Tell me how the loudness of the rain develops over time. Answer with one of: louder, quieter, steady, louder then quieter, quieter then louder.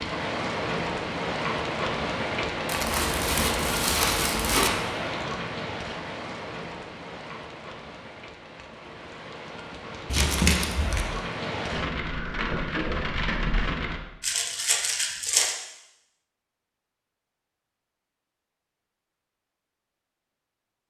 quieter then louder.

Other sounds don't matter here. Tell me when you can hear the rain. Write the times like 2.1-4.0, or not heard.
0.0-14.0.